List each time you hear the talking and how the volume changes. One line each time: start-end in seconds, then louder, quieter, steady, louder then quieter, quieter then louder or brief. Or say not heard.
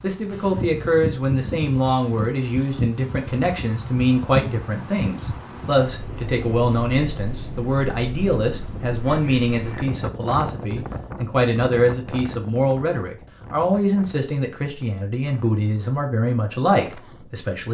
0.0-17.7 steady.